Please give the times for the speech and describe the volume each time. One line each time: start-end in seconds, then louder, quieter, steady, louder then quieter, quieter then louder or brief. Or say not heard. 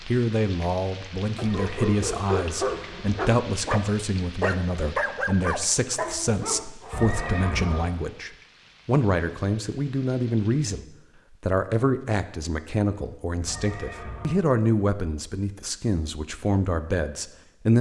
0.1-17.7 steady.